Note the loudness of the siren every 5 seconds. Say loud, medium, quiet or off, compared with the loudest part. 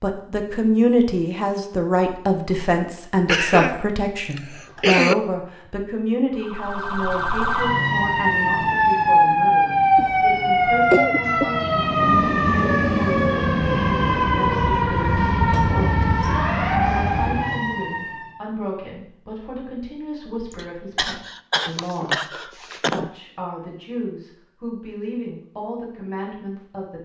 off, loud, loud, loud, off, off.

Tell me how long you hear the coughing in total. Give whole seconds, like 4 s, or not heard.
6 s.